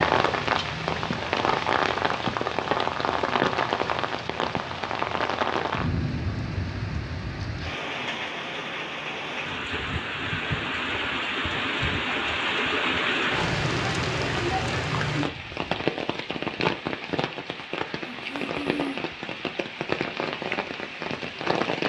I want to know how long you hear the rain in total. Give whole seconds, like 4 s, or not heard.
22 s.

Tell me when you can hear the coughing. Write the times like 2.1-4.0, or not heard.
18.0-19.0.